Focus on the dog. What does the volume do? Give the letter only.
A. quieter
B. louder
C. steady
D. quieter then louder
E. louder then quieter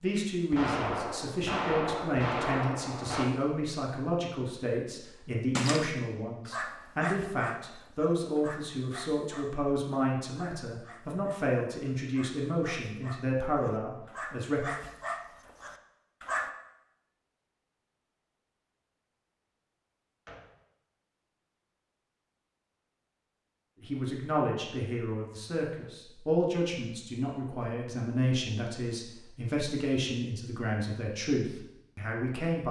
D.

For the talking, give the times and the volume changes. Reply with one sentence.
The talking can be heard from 0.0 to 14.7 s, at a steady volume; and from 23.8 to 32.6 s, at a steady volume.